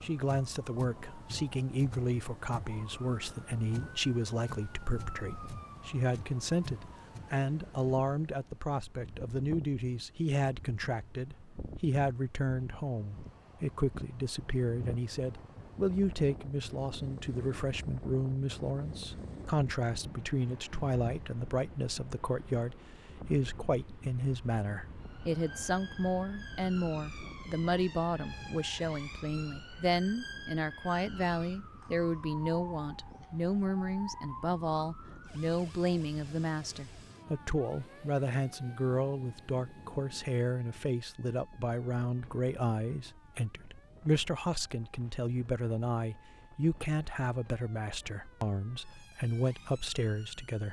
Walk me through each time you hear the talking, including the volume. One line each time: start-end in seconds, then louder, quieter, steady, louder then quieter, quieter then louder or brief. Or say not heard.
0.0-50.6 steady.